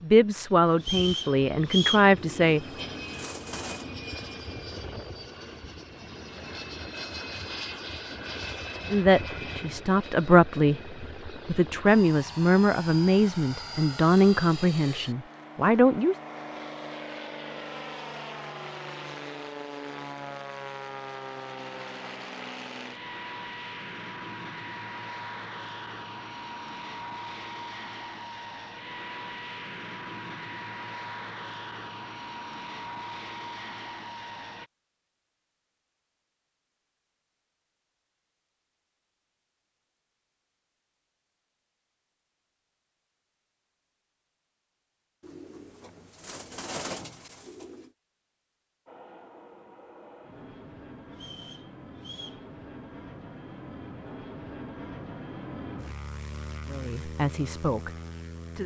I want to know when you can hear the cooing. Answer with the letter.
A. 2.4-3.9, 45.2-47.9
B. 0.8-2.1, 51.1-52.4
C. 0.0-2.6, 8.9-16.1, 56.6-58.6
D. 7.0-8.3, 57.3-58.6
A.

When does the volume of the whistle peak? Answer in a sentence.
The loudest moment of the whistle is at 2 seconds.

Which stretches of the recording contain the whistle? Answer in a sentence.
The whistle can be heard from 0.8 to 2.1 s and from 51.1 to 52.4 s.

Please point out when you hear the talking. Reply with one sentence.
You can hear the talking from 0.0 to 2.6 s, from 8.9 to 16.1 s and from 56.6 to 58.6 s.